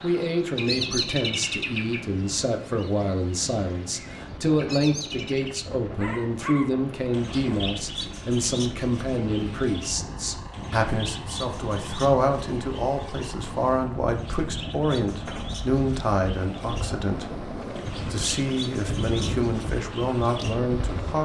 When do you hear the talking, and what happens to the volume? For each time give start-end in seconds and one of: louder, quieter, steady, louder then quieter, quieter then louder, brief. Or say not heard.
0.0-21.2 steady.